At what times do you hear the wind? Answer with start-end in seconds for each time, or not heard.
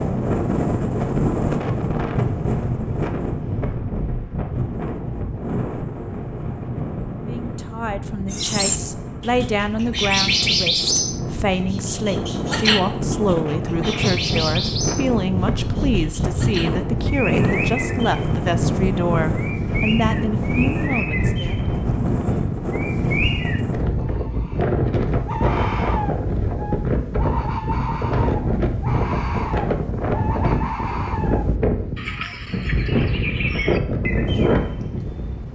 0.0-35.5.